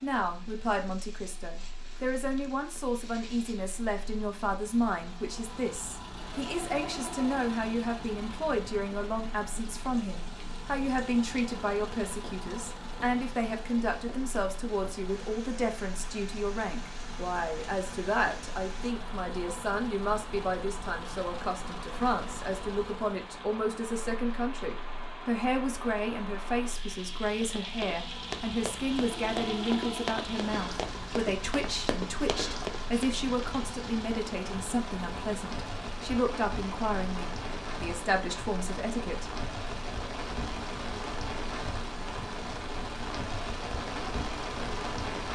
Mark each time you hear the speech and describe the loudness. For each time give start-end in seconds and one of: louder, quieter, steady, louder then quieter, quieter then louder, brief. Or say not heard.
0.0-39.3 steady.